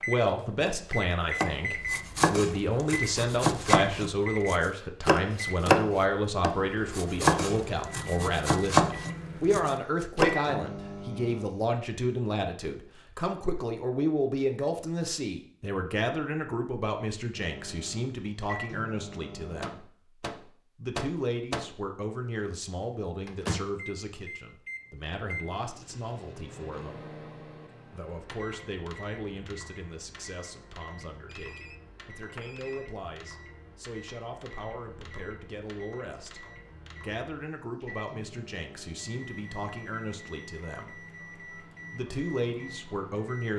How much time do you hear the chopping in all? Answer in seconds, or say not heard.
9 s.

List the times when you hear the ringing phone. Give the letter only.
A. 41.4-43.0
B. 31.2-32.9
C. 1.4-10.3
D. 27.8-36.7
B.